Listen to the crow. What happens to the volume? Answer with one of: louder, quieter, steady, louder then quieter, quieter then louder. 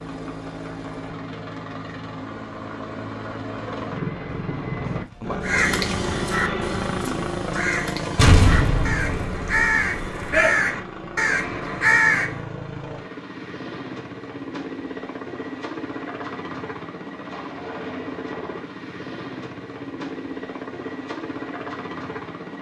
louder.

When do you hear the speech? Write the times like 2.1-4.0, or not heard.
not heard.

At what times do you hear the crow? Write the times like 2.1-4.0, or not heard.
5.4-12.4.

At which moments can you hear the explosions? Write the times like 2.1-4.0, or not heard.
8.2-10.4.